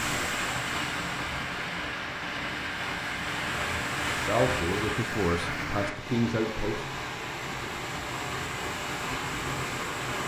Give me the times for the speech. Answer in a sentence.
You can hear the speech from 4.2 to 6.9 s.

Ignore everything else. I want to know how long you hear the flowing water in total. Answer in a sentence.
The flowing water can be heard for 10 seconds in total.